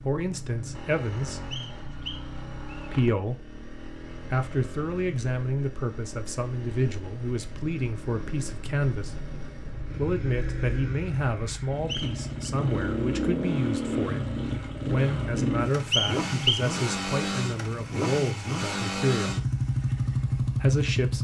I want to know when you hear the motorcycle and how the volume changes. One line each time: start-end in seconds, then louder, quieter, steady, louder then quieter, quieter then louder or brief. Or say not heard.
0.0-21.1 louder.